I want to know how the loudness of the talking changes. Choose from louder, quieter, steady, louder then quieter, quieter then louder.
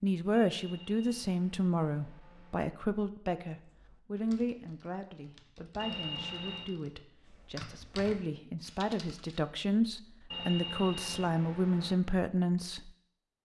quieter then louder.